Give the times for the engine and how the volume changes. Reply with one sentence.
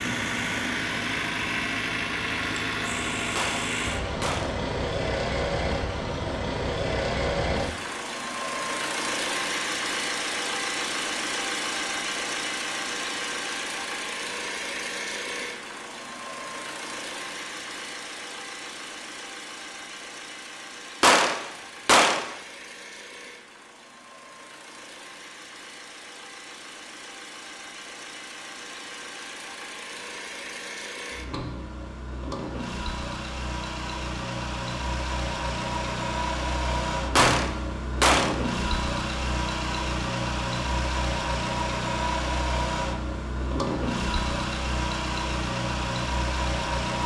The engine can be heard from 0.0 to 47.0 s, getting quieter then louder.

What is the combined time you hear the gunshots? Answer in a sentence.
The gunshots can be heard for 4 seconds in total.